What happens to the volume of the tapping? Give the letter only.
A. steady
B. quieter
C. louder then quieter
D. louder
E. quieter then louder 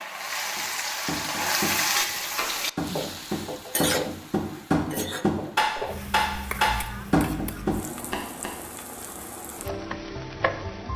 D.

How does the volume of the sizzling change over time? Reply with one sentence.
The volume of the sizzling goes down.